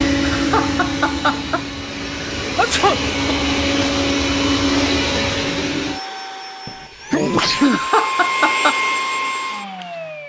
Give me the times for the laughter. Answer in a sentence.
The laughter can be heard from 0.2 to 1.6 s and from 7.6 to 8.8 s.